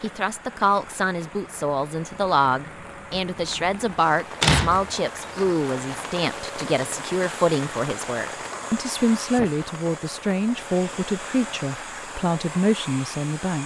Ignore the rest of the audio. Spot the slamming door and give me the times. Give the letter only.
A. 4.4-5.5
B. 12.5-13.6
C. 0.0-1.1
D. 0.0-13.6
A.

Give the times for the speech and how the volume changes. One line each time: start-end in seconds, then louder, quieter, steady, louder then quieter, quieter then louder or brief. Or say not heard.
0.0-13.6 steady.